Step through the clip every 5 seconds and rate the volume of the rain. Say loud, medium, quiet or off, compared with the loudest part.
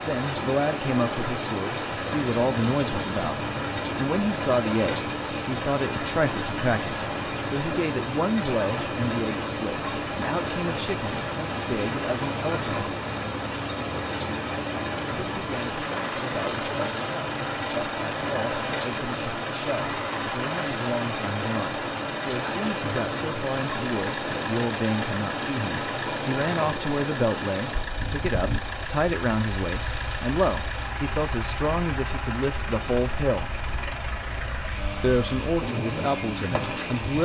loud, loud, loud, loud, loud, loud, medium, loud.